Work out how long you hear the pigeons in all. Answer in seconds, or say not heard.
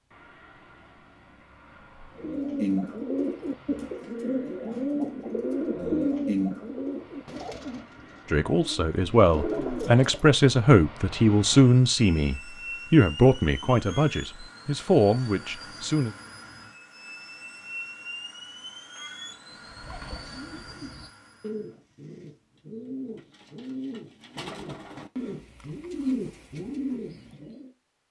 16 s.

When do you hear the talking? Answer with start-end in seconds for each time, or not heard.
8.3-16.1.